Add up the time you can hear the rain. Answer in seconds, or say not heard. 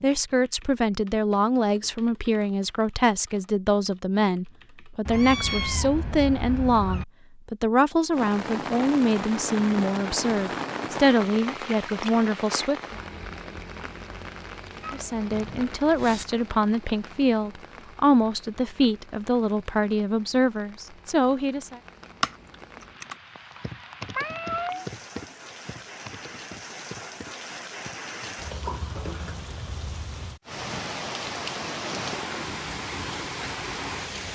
26 s.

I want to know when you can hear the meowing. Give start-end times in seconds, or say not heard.
5.0-7.0, 14.8-16.2, 24.1-24.9.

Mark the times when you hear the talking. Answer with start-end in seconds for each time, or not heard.
0.0-13.0, 14.9-21.8.